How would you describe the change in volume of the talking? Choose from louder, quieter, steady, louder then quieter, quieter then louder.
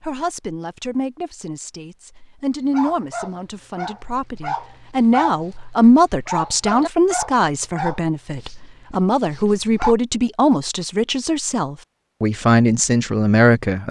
louder.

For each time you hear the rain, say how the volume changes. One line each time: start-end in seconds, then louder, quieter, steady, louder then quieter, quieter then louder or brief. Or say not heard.
not heard.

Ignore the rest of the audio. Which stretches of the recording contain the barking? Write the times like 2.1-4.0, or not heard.
2.7-9.9.